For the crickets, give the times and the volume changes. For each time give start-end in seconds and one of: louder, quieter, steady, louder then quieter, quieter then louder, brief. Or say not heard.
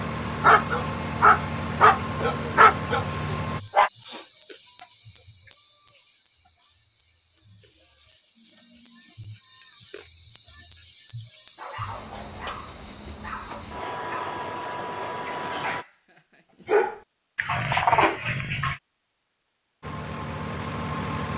0.0-15.8 quieter then louder.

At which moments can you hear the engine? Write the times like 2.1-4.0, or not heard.
0.0-3.6, 19.8-21.3.